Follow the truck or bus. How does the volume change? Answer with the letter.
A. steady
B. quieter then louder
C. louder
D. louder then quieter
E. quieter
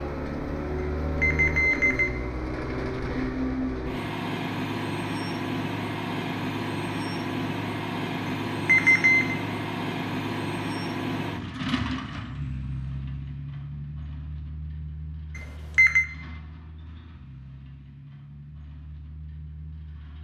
E.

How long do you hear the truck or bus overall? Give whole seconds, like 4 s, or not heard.
20 s.